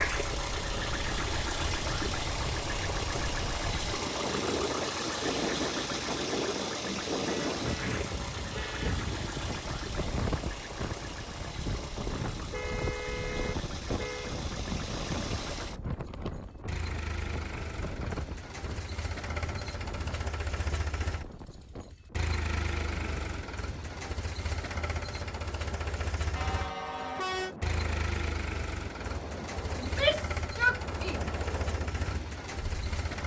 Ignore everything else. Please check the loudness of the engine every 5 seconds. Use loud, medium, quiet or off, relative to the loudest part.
loud, loud, medium, medium, medium, medium, medium.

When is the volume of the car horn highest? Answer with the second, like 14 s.
27 s.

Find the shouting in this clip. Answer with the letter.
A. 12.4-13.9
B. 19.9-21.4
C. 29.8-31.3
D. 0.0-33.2
C.